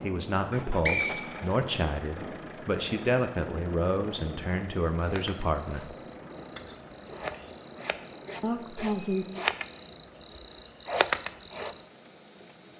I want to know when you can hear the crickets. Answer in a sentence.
You can hear the crickets from 5.0 to 12.7 s.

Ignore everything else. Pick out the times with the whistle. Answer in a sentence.
The whistle can be heard from 0.3 to 1.3 s.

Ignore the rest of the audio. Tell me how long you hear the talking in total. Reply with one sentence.
The talking can be heard for 7 seconds in total.